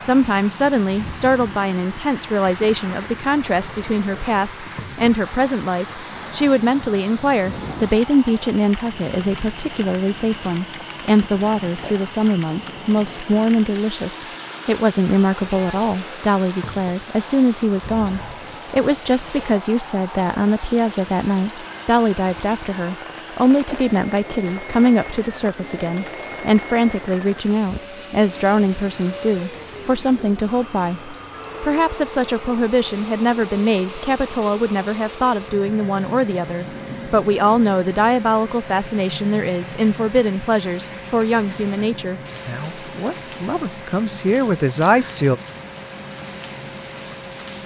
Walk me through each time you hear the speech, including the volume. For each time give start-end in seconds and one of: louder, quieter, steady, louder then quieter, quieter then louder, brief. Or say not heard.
0.0-45.4 steady.